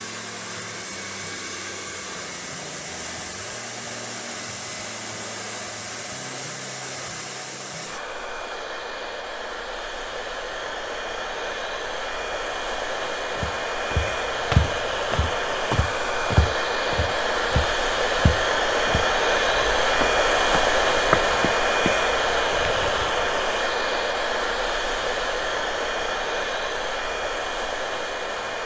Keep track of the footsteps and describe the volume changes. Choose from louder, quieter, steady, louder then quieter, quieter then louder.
quieter then louder.